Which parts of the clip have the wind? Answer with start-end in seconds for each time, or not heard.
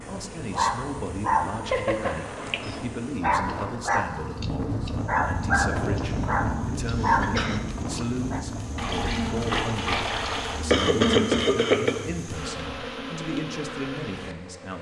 0.0-9.5.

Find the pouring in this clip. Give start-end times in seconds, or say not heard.
8.8-10.7.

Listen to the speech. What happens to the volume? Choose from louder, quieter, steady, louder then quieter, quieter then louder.
steady.